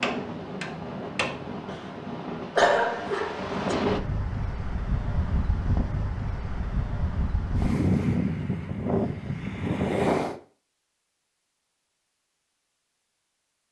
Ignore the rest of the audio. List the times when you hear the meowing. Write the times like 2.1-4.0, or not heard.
not heard.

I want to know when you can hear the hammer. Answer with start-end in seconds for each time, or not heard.
0.0-1.8.